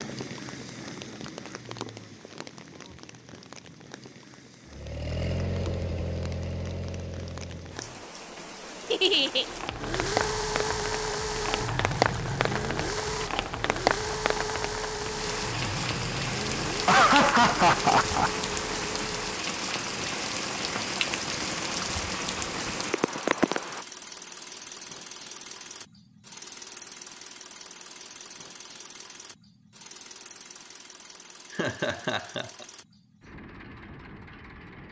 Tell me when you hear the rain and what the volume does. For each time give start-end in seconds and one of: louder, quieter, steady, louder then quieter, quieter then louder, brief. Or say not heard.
0.0-23.9 louder.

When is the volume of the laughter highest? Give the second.
17 s.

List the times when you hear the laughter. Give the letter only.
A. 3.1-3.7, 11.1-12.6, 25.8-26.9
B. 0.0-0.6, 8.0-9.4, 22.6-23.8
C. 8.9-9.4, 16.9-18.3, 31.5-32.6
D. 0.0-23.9
C.